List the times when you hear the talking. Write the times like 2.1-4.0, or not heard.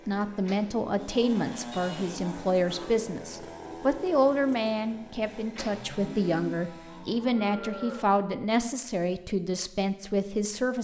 0.1-10.7.